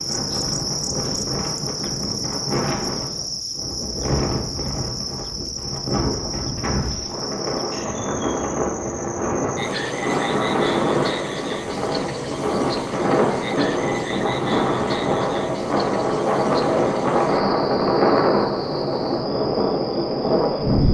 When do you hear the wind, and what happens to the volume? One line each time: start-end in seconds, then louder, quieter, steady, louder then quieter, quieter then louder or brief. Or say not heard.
0.0-20.9 louder.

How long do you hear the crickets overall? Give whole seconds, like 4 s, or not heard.
21 s.